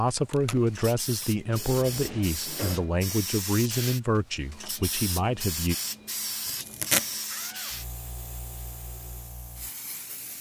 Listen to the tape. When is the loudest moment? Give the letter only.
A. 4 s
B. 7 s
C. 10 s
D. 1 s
B.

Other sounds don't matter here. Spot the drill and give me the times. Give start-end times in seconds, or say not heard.
not heard.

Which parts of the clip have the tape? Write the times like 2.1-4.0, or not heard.
0.1-1.2, 6.5-7.2.